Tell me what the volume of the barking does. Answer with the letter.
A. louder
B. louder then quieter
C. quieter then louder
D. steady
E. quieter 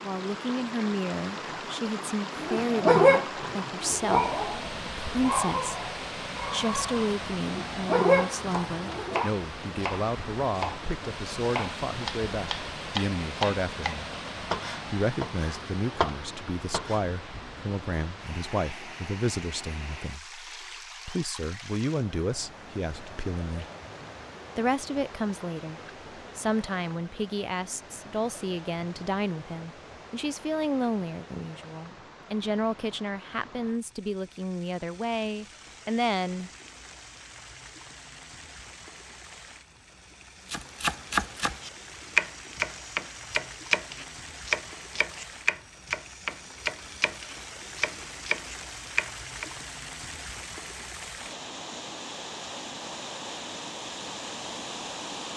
C.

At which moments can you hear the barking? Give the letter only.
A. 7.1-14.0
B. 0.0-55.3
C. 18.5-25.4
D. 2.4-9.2
D.